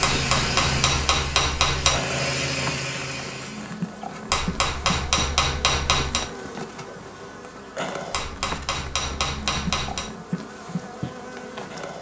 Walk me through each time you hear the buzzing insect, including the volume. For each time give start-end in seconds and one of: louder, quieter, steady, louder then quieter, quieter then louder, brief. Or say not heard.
0.1-11.9 steady.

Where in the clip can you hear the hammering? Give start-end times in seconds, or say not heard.
0.0-2.0, 4.2-6.2, 8.1-10.1.